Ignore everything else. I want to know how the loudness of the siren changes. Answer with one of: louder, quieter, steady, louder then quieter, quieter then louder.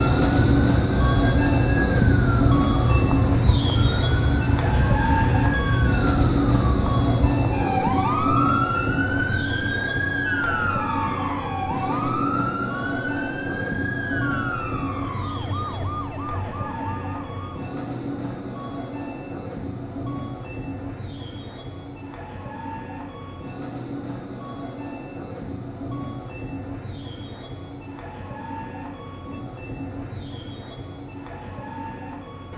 quieter.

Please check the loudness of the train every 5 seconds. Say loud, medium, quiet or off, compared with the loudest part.
loud, loud, medium, medium, quiet, quiet, quiet.